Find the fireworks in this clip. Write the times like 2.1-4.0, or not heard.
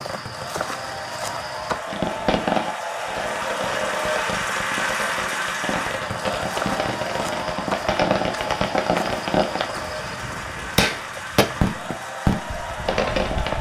1.9-13.5.